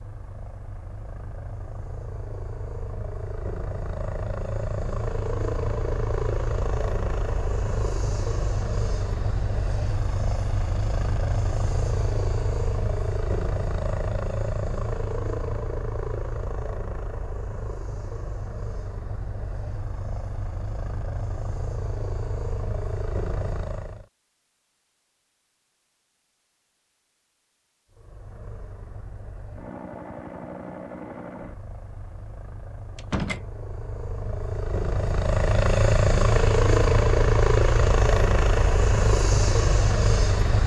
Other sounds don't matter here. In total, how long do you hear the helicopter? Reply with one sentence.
The helicopter can be heard for 37 seconds in total.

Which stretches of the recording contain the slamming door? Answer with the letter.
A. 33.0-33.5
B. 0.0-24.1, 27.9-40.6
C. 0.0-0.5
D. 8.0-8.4
A.